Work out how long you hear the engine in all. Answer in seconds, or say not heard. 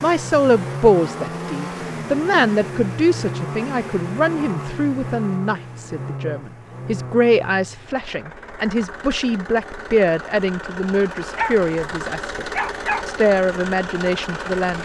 15 s.